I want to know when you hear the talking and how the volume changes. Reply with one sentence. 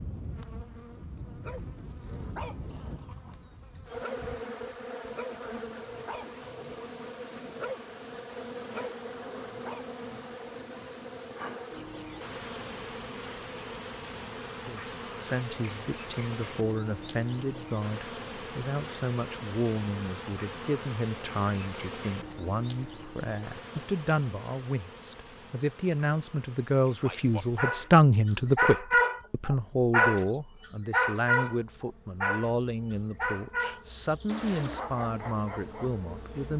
You can hear the talking from 14.6 to 36.5 s, getting louder then quieter.